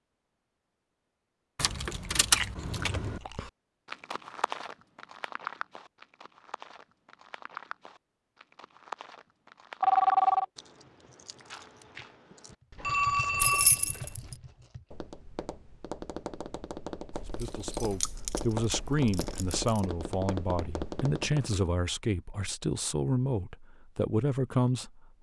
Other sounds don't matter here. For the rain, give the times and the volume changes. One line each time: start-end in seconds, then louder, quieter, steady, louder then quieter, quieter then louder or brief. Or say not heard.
not heard.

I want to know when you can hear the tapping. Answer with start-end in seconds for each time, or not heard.
12.6-21.6.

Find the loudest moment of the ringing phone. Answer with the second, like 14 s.
10 s.